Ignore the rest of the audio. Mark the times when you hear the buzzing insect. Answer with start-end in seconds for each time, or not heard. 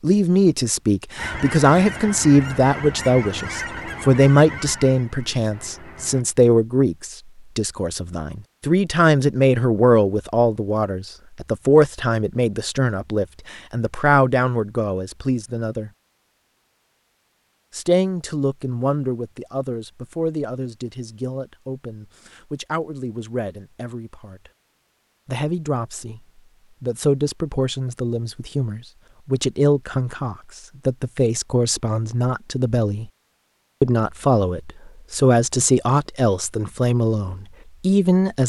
not heard.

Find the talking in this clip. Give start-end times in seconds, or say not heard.
0.0-15.9, 17.7-24.5, 25.2-26.2, 26.8-33.1, 33.8-38.4.